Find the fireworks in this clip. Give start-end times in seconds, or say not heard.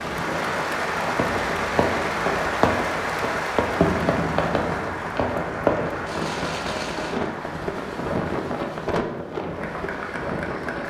1.1-7.3.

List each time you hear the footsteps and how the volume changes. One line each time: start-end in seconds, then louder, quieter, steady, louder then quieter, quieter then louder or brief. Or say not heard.
not heard.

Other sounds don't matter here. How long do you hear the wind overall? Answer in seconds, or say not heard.
11 s.